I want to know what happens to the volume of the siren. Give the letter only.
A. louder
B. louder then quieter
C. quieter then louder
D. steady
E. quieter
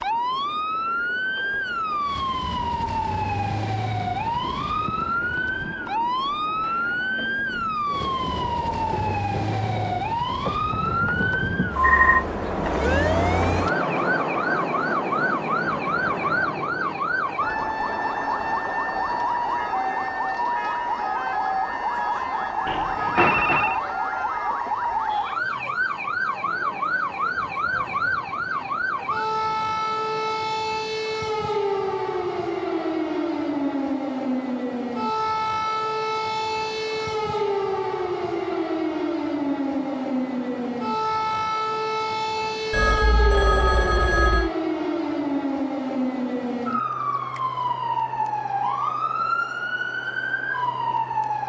D.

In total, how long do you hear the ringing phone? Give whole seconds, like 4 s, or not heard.
4 s.